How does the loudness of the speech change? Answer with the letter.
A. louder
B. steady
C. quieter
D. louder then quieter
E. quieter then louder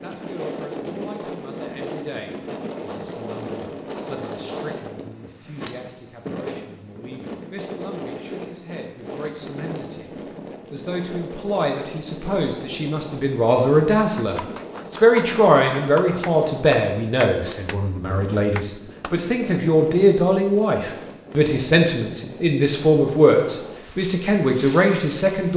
A.